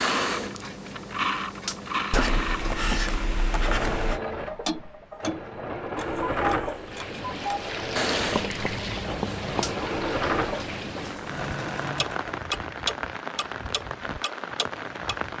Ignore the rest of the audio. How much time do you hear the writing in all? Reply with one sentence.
The writing can be heard for 4 seconds in total.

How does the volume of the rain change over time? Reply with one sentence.
The loudness of the rain stays about the same.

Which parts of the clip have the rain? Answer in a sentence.
The rain can be heard from 6.7 to 15.3 s.